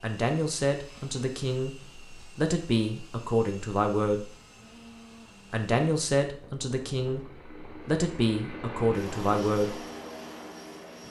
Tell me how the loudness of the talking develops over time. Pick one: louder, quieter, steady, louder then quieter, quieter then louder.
steady.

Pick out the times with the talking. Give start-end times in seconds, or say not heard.
0.0-4.3, 5.5-9.8.